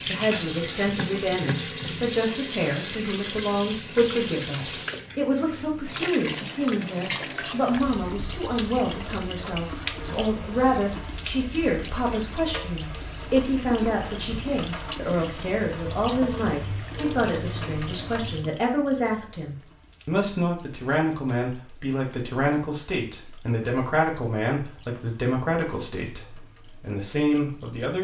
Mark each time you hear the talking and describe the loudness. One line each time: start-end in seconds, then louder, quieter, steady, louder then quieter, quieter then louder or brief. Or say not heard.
0.1-27.9 steady.